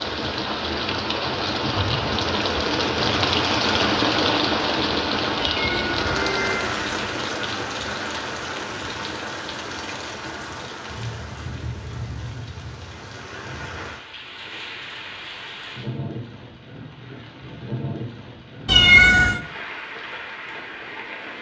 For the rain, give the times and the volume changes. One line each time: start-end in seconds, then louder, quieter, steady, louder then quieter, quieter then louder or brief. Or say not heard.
0.0-21.3 quieter.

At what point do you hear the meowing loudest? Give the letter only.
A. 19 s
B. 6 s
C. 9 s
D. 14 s
A.